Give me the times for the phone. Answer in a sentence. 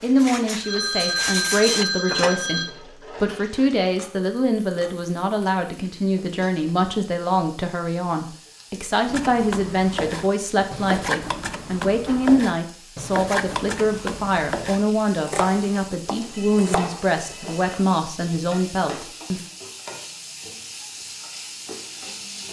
The phone can be heard from 0.6 to 2.6 s and from 16.1 to 17.8 s.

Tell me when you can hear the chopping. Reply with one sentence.
You can hear the chopping from 9.1 to 17.1 s.